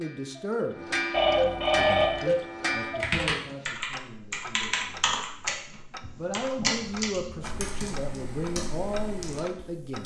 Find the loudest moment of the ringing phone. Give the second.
2 s.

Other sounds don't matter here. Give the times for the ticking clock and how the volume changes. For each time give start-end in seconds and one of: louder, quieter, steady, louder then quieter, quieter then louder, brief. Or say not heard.
0.0-10.0 quieter.